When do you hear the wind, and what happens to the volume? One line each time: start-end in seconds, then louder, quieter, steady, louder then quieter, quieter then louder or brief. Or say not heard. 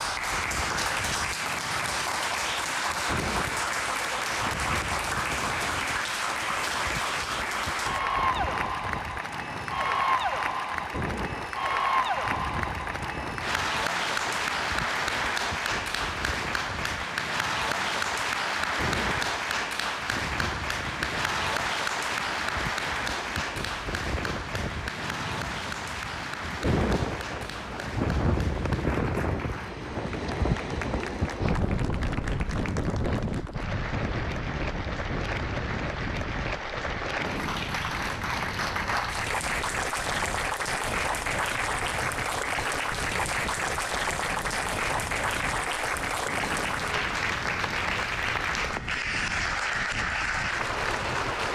0.0-51.4 louder then quieter.